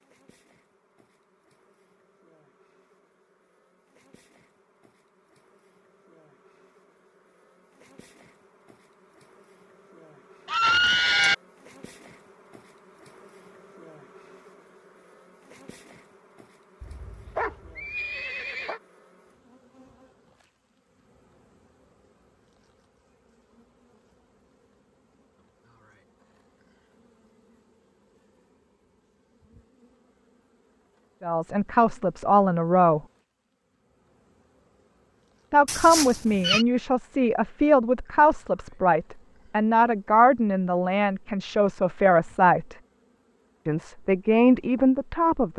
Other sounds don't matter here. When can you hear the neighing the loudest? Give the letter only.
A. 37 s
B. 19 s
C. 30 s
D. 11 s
D.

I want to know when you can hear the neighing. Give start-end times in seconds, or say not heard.
10.4-11.3, 16.8-18.8, 35.6-36.6.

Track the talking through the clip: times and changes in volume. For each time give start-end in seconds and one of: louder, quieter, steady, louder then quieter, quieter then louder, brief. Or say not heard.
31.2-33.0 brief
35.5-42.8 steady
43.6-45.5 brief.